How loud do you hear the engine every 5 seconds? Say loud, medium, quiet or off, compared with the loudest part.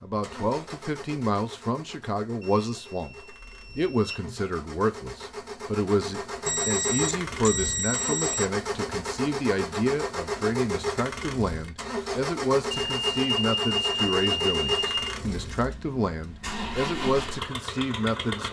quiet, loud, loud, loud.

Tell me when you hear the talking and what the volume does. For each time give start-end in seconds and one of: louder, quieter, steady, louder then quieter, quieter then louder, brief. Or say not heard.
0.0-18.4 steady.